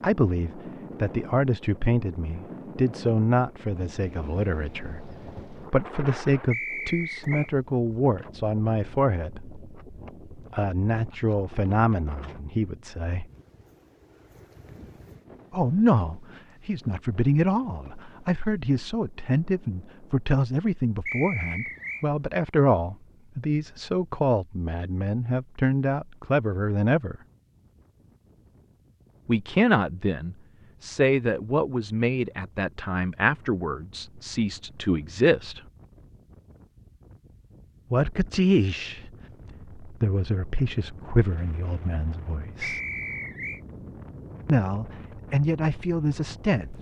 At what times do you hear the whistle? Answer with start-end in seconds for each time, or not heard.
6.5-7.5, 21.1-22.1, 42.6-43.6.